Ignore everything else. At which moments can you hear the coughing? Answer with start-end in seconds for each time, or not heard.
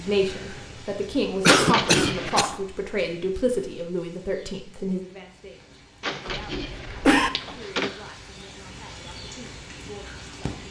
1.4-2.5, 6.2-7.3.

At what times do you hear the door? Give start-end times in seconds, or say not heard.
1.4-2.5, 6.0-7.9.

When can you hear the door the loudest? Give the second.
2 s.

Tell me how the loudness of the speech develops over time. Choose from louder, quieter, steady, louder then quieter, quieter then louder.
quieter.